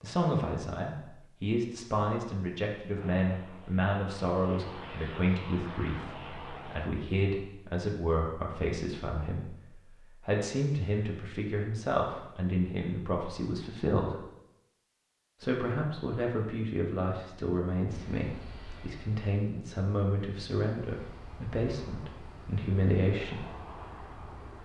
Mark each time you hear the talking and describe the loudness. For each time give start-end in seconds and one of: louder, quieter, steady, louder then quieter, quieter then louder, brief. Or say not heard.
0.0-14.2 steady
15.4-23.4 steady.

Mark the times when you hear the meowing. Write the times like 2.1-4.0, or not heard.
not heard.